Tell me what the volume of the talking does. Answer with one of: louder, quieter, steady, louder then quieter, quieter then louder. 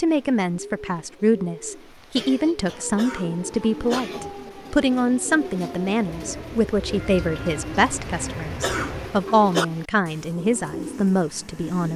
steady.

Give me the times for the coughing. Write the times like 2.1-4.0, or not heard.
3.0-4.0, 8.6-9.7.